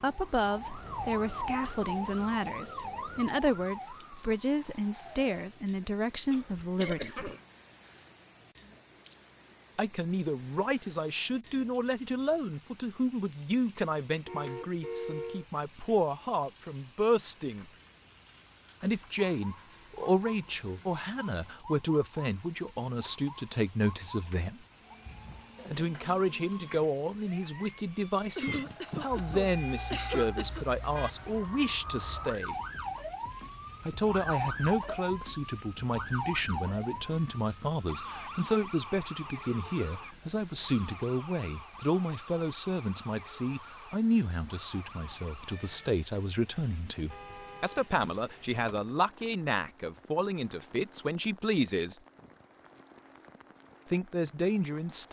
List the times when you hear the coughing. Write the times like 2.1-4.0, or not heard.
6.3-7.4, 28.4-30.6.